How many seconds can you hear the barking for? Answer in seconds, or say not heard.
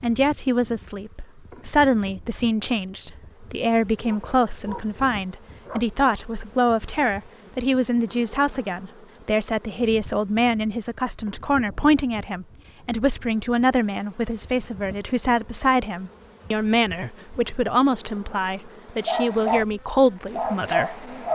4 s.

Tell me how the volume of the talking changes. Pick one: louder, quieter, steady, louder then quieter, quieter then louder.
steady.